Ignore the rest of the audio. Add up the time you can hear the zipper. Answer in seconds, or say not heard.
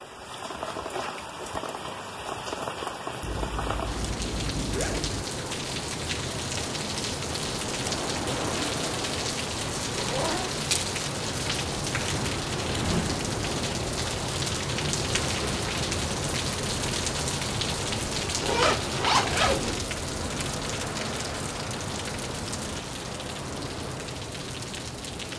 4 s.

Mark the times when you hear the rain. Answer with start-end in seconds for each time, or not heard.
0.0-25.3.